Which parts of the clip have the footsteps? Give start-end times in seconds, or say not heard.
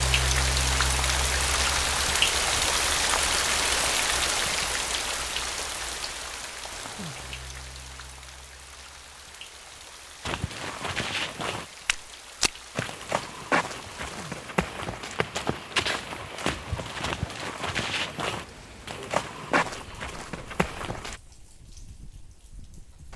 10.2-21.2.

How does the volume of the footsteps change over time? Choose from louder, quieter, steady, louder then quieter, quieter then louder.
steady.